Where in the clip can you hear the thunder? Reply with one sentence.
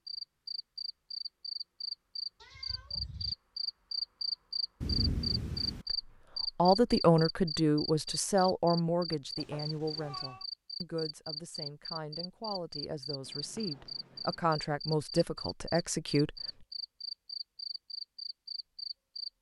The thunder can be heard from 4.8 to 5.8 s.